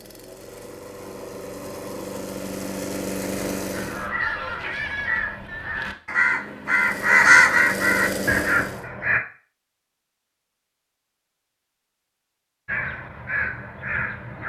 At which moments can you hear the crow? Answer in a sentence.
You can hear the crow from 3.7 to 9.2 s and from 12.7 to 14.4 s.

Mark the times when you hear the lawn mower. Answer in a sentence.
You can hear the lawn mower from 0.0 to 4.1 s and from 6.7 to 8.8 s.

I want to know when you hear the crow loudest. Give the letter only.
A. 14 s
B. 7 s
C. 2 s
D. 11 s
B.